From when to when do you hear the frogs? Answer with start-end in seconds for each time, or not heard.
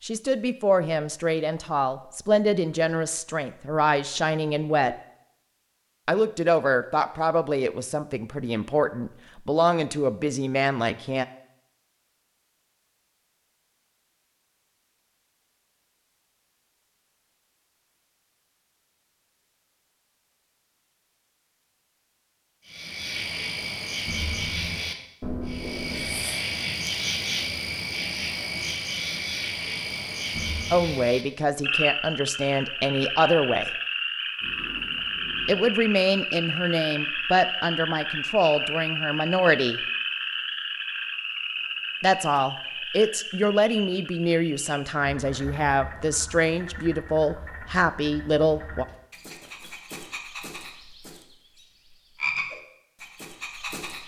22.6-54.0.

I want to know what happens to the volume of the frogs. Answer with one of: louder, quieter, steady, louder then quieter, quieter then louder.
quieter.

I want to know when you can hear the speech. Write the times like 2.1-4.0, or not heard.
0.0-5.0, 6.0-11.2, 30.7-33.7, 35.5-39.8, 42.0-48.9.